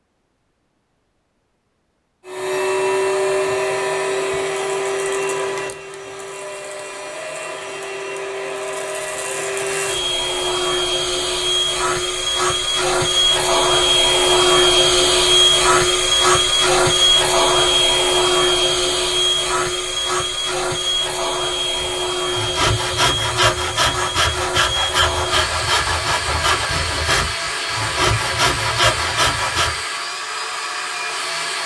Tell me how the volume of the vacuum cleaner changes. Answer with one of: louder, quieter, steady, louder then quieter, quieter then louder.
louder then quieter.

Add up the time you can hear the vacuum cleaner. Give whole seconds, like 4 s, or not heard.
29 s.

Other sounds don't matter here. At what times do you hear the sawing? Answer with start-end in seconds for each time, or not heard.
21.8-29.9.